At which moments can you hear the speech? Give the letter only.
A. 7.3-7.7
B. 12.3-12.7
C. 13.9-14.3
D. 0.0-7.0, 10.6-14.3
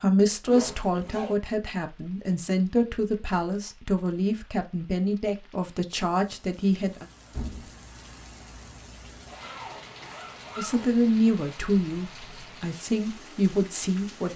D.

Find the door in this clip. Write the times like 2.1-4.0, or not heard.
7.3-7.7.